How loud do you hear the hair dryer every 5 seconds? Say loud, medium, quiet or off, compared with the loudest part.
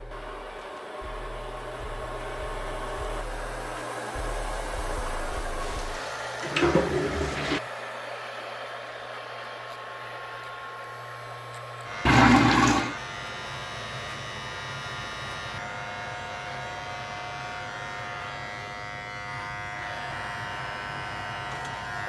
loud, loud, medium, medium, medium.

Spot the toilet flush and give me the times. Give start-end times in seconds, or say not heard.
5.6-7.6, 12.1-12.9.